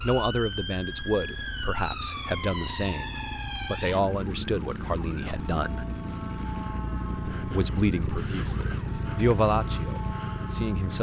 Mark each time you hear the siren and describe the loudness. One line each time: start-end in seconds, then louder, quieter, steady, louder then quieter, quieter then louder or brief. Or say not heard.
0.0-10.9 steady.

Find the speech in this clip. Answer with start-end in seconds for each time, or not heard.
0.0-5.8, 7.2-10.9.